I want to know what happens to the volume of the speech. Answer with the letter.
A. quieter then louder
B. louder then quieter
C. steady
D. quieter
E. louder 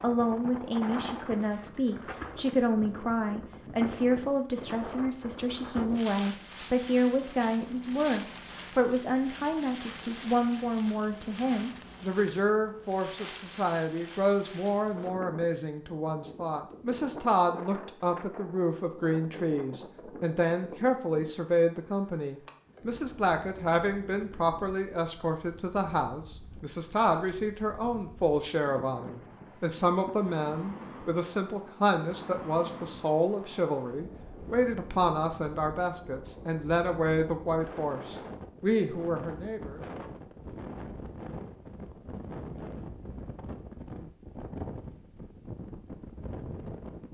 C.